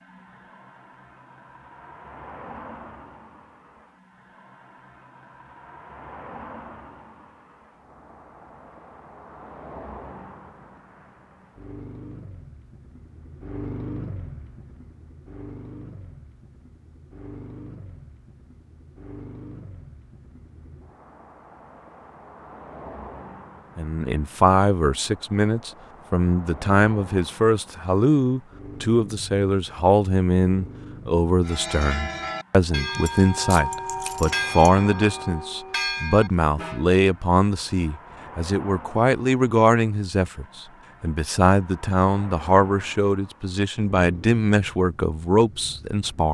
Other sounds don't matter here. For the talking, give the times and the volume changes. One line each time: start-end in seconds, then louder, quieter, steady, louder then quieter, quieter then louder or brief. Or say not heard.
23.8-46.2 steady.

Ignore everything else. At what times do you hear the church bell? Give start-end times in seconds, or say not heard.
31.4-36.9.